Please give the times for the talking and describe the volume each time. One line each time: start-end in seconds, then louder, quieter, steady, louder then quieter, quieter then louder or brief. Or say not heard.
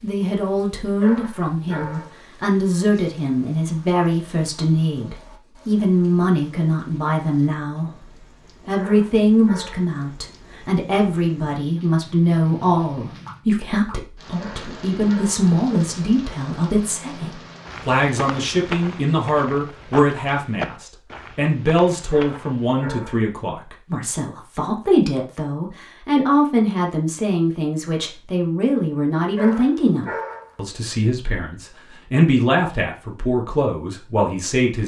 0.0-7.9 steady
8.7-34.8 steady.